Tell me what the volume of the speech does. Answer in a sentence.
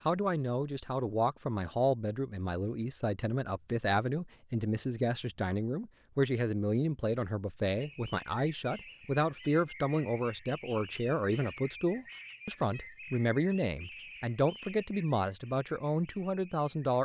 The loudness of the speech stays about the same.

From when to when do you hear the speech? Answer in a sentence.
You can hear the speech from 0.1 to 17.0 s.